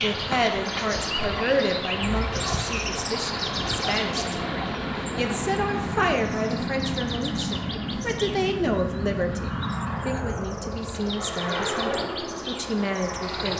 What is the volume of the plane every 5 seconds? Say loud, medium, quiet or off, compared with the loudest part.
medium, loud, loud.